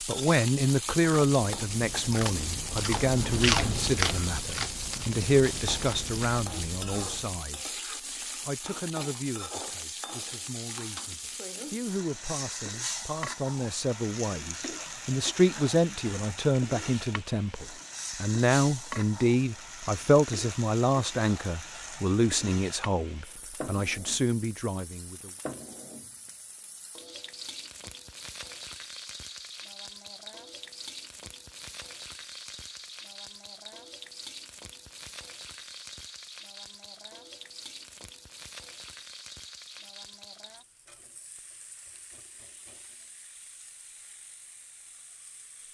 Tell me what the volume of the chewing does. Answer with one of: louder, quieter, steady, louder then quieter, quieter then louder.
louder then quieter.